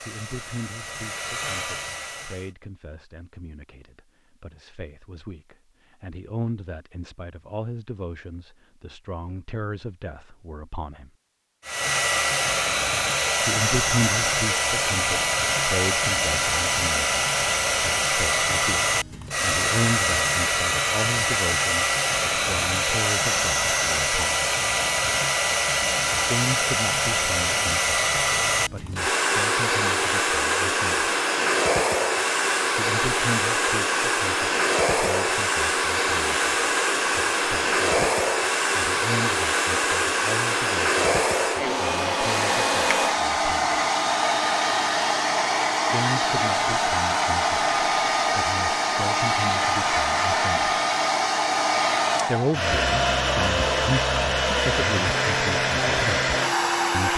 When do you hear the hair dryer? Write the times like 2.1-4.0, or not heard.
0.0-2.5, 11.7-57.1.